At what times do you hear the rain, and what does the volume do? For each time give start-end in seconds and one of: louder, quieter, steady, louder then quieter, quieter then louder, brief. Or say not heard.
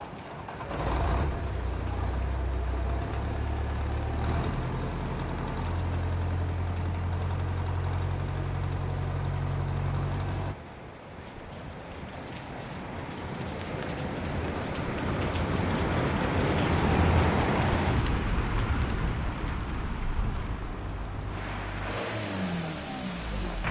0.0-23.6 louder then quieter.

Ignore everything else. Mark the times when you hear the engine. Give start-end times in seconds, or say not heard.
0.0-10.6, 20.1-23.6.